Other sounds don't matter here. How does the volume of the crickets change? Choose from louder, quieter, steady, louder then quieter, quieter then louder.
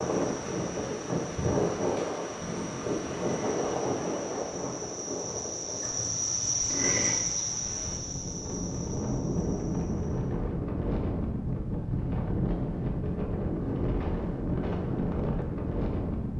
louder then quieter.